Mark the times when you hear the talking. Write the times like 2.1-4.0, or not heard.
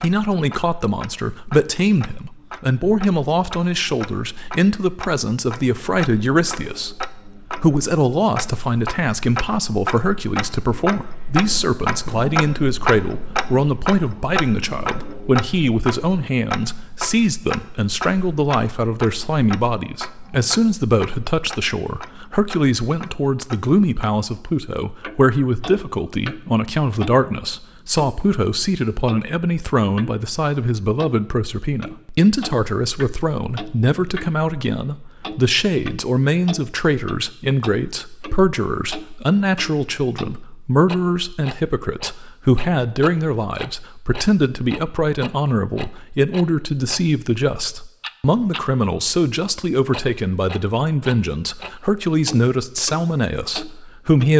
0.0-54.3.